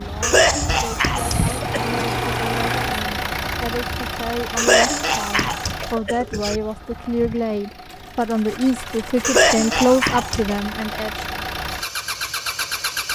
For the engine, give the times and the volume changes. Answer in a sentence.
You can hear the engine from 0.0 to 13.1 s, getting quieter then louder.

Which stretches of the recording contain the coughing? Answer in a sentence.
You can hear the coughing from 0.2 to 2.1 s, from 4.5 to 6.6 s and from 9.2 to 10.6 s.